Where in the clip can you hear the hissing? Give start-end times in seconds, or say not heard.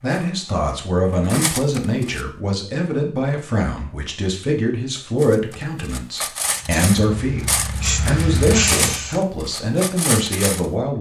6.4-9.2.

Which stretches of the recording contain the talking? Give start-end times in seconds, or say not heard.
0.0-7.5, 8.1-10.9.